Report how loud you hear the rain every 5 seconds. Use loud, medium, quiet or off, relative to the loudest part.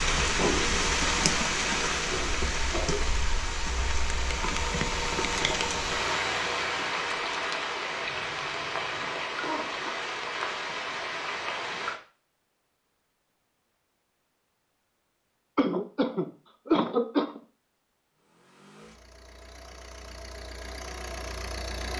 loud, loud, loud, off, off.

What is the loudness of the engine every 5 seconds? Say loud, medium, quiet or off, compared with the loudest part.
loud, loud, off, quiet, medium.